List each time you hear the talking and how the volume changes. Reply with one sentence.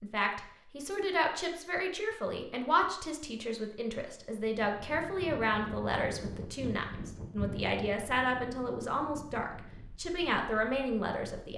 You can hear the talking from 0.0 to 11.5 s, at a steady volume.